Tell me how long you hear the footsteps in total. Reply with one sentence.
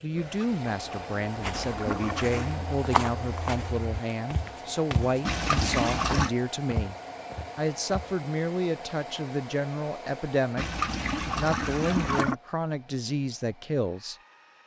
The footsteps can be heard for 7 seconds in total.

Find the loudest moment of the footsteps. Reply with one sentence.
The loudest moment of the footsteps is at 3 seconds.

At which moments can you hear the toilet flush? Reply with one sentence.
You can hear the toilet flush from 0.1 to 2.9 s, from 5.2 to 6.3 s and from 10.6 to 12.3 s.